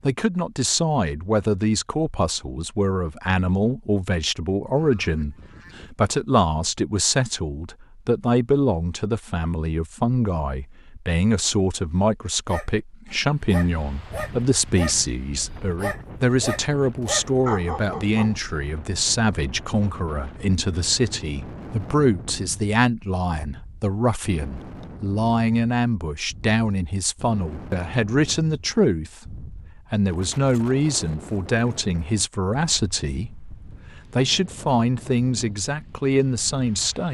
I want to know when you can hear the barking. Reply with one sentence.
You can hear the barking from 12.4 to 18.4 s.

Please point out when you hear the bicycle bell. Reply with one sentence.
The bicycle bell can't be heard in this clip.